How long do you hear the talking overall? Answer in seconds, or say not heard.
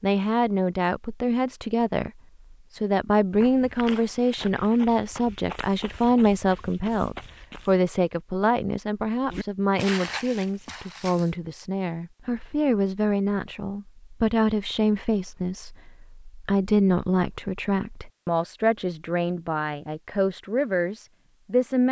21 s.